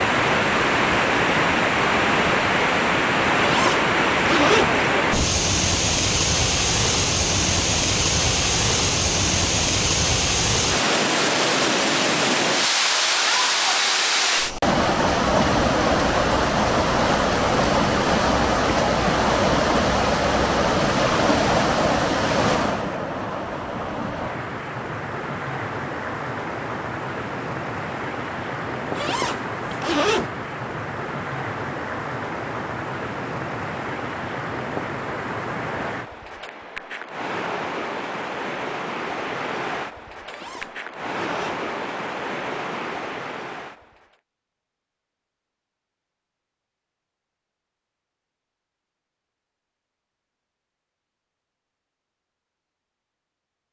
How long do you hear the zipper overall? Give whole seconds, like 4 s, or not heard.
4 s.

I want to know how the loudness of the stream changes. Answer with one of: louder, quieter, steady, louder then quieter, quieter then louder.
quieter.